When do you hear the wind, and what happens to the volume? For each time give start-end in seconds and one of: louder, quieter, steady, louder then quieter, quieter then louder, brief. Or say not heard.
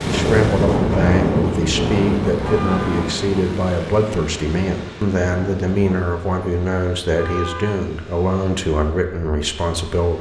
0.0-6.0 quieter.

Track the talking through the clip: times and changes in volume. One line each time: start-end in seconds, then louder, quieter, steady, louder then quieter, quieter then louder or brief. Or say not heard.
0.0-10.1 steady.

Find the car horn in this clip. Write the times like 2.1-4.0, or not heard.
2.4-3.1, 7.2-7.8.